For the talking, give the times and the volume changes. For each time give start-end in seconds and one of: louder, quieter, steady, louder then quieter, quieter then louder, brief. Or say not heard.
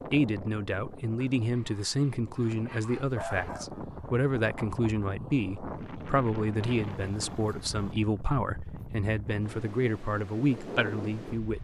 0.1-11.5 steady.